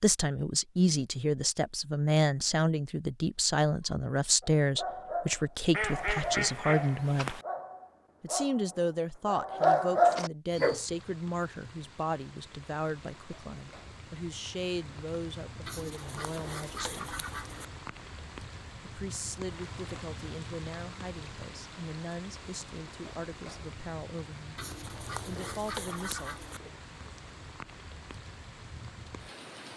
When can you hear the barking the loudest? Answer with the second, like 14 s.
10 s.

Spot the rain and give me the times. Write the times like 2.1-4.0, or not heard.
10.6-29.7.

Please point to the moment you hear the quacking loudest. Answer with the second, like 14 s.
6 s.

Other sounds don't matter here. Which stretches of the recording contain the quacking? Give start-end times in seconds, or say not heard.
5.7-7.5, 15.7-17.6, 24.6-26.6.